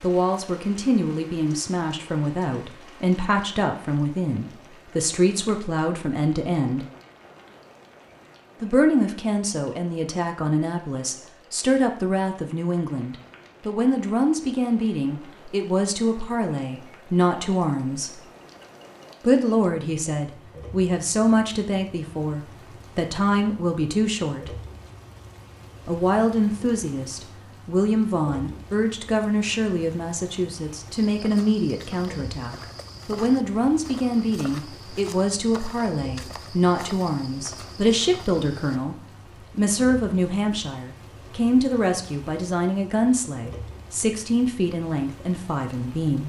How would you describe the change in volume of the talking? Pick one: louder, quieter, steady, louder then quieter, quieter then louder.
steady.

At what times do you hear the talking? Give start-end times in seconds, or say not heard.
0.0-6.8, 8.6-18.2, 19.2-24.6, 25.9-39.0, 39.5-46.2.